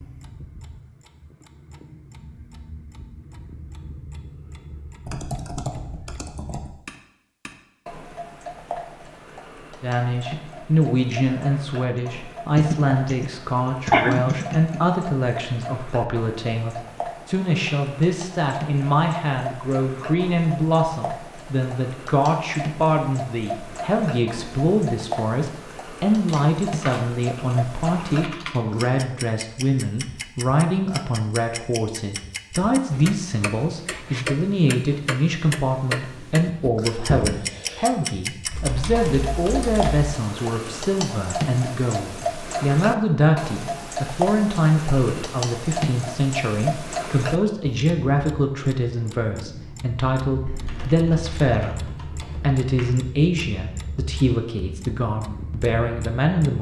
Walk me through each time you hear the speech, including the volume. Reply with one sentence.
The speech can be heard from 9.8 to 56.5 s, at a steady volume.